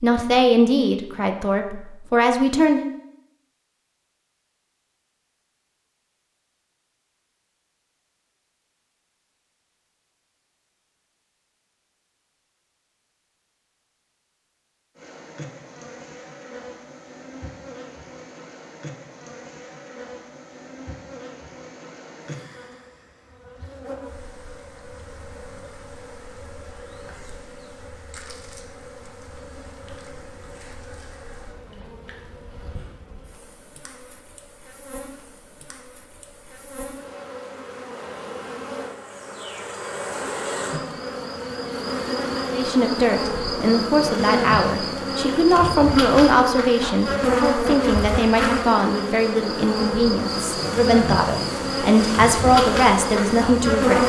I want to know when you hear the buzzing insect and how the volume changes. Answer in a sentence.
You can hear the buzzing insect from 14.9 to 54.0 s, getting louder.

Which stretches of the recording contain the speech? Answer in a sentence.
The speech can be heard from 0.0 to 2.9 s and from 42.5 to 54.0 s.